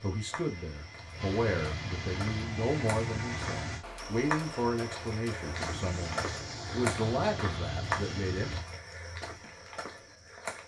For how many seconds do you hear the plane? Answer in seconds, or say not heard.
7 s.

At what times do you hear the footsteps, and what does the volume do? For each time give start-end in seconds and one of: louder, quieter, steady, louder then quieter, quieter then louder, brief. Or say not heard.
0.0-10.6 louder then quieter.